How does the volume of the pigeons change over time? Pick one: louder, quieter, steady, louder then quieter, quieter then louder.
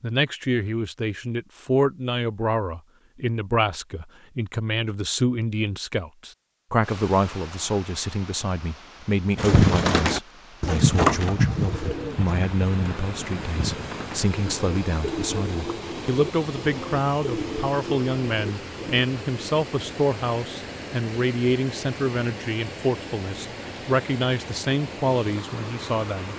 quieter.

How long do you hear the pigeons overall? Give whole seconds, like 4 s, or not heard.
10 s.